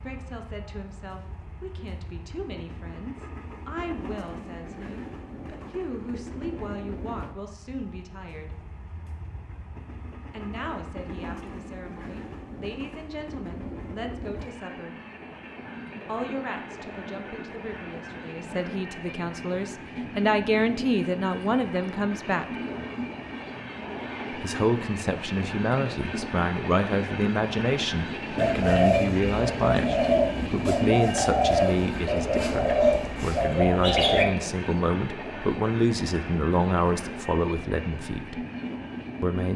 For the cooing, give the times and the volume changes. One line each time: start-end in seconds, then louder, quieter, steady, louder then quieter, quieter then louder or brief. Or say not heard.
28.4-34.2 steady.